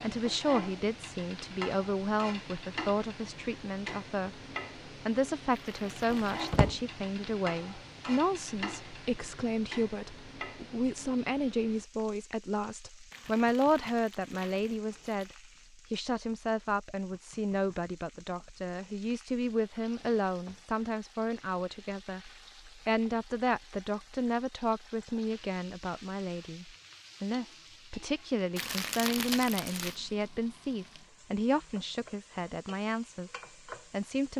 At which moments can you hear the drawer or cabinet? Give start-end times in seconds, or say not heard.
6.1-6.8.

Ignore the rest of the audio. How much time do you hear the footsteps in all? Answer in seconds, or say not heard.
not heard.